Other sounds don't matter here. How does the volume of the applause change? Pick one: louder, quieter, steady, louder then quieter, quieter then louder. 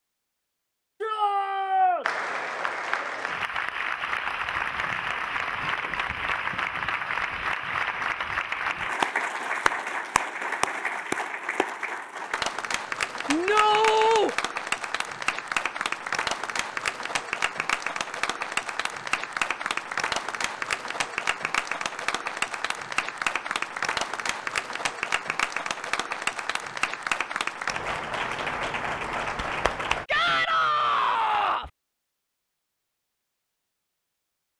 steady.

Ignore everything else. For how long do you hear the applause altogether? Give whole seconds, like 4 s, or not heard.
28 s.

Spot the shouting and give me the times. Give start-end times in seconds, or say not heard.
1.0-2.0, 13.2-14.3, 30.1-31.7.